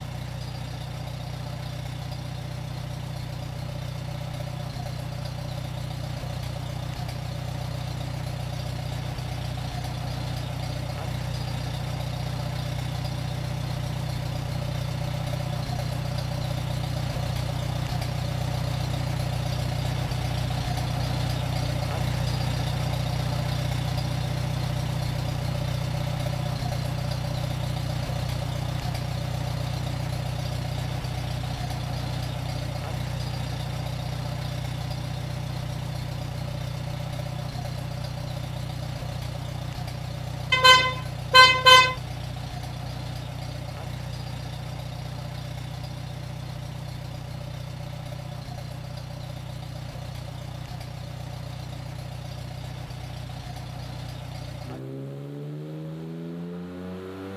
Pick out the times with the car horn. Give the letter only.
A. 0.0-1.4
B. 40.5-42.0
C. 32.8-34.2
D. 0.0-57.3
B.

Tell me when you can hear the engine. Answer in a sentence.
You can hear the engine from 0.0 to 57.3 s.